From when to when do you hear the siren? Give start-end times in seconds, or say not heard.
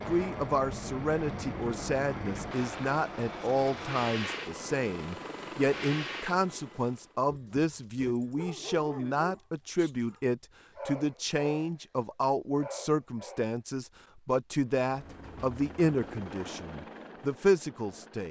not heard.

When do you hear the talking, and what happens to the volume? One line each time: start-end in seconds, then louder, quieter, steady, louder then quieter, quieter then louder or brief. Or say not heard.
0.1-18.2 steady.